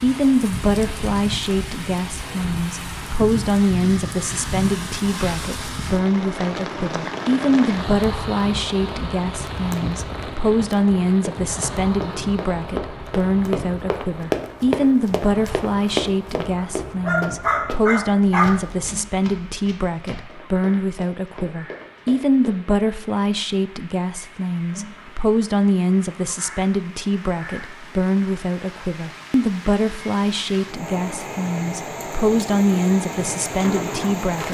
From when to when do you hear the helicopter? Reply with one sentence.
You can't hear the helicopter here.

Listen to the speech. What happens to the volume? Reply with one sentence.
The loudness of the speech stays about the same.